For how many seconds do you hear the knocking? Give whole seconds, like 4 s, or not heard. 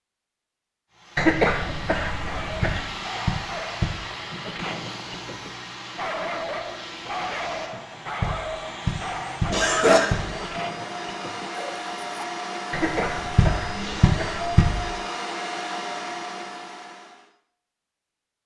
5 s.